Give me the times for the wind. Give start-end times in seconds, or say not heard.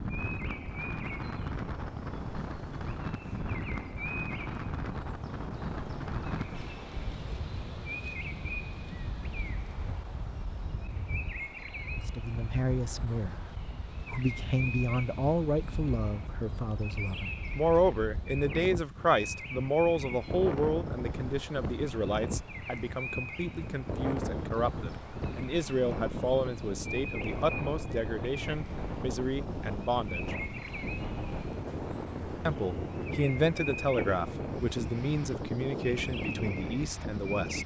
0.0-37.6.